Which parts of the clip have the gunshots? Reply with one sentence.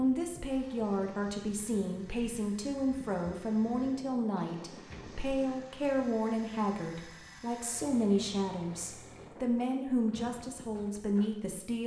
You can hear the gunshots from 4.8 to 5.2 s.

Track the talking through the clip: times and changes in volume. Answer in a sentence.
The talking can be heard from 0.0 to 11.8 s, at a steady volume.